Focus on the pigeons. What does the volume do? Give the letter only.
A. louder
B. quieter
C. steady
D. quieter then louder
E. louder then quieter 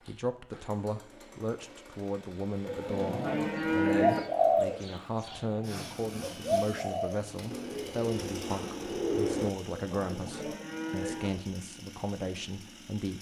D.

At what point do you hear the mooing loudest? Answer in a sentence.
The volume of the mooing peaks at 4 seconds.